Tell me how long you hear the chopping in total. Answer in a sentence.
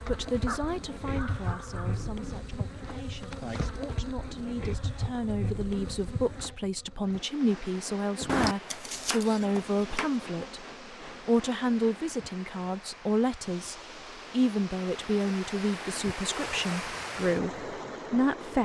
The chopping can be heard for 2 seconds in total.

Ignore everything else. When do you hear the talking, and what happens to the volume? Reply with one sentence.
The talking can be heard from 0.1 to 18.6 s, getting louder.